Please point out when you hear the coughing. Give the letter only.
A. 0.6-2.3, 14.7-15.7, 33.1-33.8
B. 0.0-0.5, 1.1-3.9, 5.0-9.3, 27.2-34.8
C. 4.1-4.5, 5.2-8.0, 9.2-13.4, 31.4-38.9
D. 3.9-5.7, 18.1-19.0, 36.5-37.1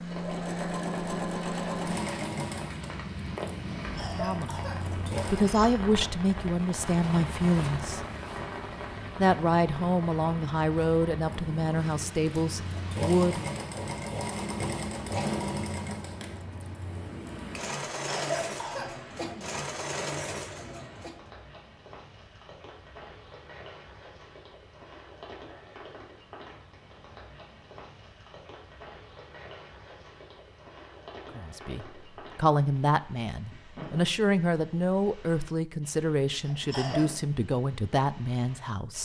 D.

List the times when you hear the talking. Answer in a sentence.
The talking can be heard from 4.1 to 4.5 s, from 5.2 to 8.0 s, from 9.2 to 13.4 s and from 31.4 to 38.9 s.